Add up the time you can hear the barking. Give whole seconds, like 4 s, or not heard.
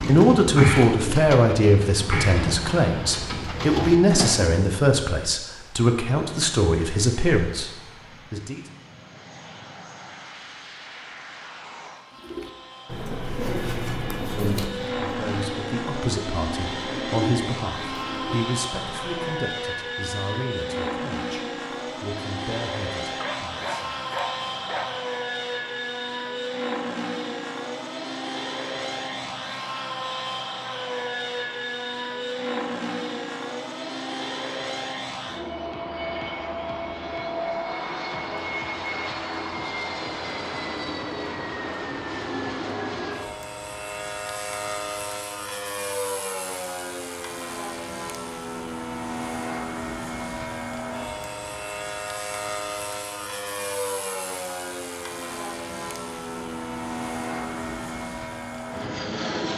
2 s.